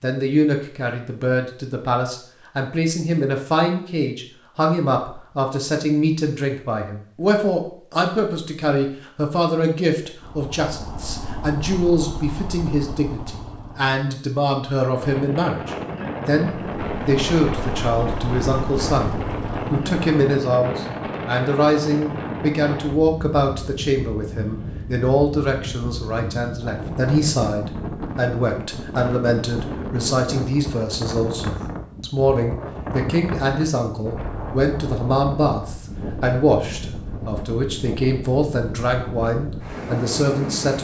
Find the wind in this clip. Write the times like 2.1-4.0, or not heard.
14.9-40.7.